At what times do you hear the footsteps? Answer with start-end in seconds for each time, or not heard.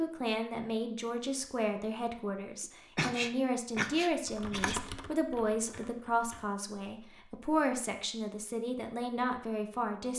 not heard.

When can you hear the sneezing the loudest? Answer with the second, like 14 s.
3 s.